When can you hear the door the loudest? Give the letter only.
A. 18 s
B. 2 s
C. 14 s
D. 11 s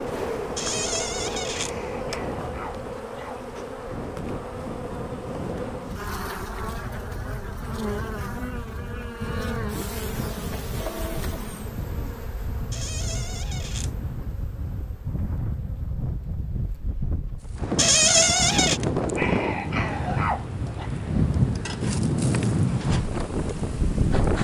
A.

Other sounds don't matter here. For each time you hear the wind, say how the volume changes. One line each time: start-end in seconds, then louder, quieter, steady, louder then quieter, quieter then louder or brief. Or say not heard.
0.0-24.3 louder.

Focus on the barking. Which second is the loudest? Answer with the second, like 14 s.
20 s.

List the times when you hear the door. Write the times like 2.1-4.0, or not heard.
0.6-1.7, 12.7-13.9, 17.8-18.8.